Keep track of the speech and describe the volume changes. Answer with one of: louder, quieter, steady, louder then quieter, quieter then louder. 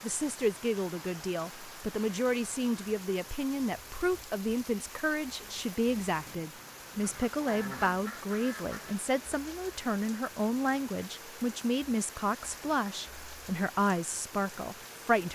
steady.